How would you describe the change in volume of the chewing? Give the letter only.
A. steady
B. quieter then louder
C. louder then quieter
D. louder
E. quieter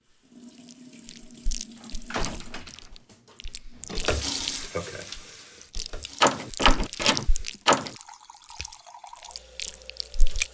D.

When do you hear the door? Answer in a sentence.
The door can be heard from 1.8 to 3.5 s and from 6.2 to 7.9 s.